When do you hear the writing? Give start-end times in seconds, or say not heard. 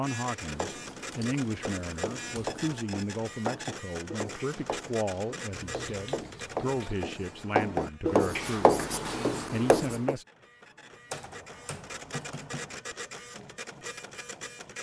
0.4-10.2.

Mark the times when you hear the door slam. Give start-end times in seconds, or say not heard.
not heard.